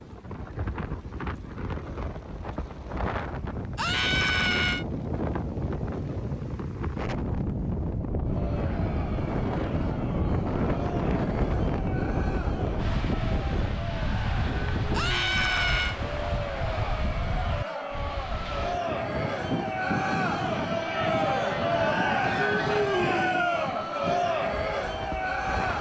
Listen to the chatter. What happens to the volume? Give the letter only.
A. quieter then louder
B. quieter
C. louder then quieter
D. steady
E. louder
E.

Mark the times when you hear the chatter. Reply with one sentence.
The chatter can be heard from 8.2 to 25.7 s.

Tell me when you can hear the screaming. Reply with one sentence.
The screaming can be heard from 3.8 to 4.8 s and from 14.9 to 16.0 s.